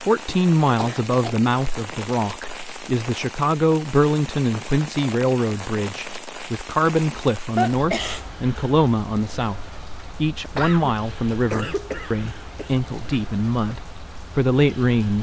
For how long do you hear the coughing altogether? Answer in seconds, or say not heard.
4 s.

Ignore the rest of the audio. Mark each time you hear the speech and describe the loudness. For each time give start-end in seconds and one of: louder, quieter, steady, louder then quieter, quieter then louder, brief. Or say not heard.
0.0-15.1 steady.